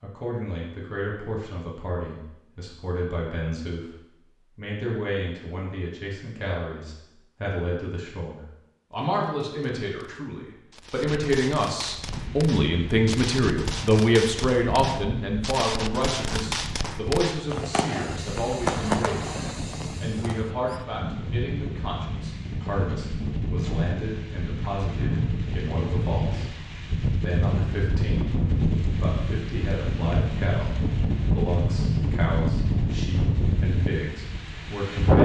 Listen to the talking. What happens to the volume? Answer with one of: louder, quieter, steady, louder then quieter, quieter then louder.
louder then quieter.